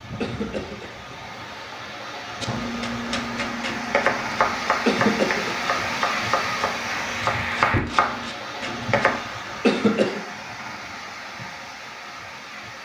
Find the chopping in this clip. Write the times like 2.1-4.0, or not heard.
2.4-9.2.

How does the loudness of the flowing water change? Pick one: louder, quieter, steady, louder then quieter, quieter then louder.
louder then quieter.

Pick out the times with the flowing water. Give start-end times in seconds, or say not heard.
0.0-12.8.